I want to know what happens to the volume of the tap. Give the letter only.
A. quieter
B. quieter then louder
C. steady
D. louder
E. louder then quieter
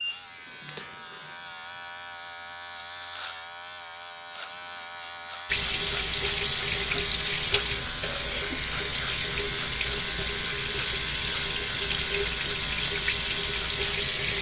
C.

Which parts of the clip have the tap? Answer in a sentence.
The tap can be heard from 5.5 to 14.3 s.